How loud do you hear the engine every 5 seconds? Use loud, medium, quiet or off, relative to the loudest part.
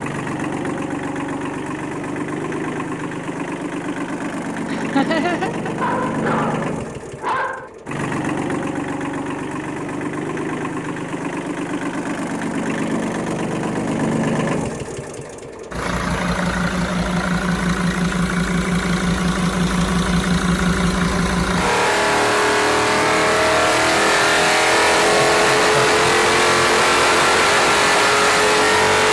medium, medium, medium, medium, loud, loud.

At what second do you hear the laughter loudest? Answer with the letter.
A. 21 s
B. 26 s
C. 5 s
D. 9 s
C.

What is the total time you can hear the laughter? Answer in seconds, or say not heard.
2 s.